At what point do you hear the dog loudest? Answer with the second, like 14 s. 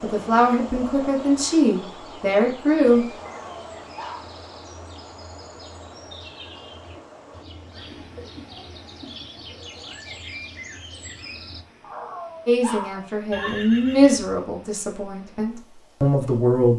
13 s.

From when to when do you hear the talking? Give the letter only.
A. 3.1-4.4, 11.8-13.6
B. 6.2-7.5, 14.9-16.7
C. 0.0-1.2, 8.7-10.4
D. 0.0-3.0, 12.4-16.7
D.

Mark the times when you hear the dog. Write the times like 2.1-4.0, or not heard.
3.1-4.4, 11.8-13.6.